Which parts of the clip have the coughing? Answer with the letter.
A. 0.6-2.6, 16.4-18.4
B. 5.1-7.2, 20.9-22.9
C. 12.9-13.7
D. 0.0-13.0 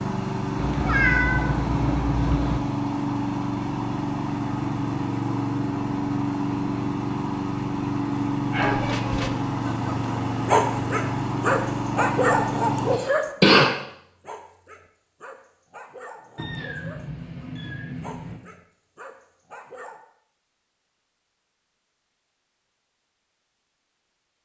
C.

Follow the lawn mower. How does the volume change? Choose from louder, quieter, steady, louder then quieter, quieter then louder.
steady.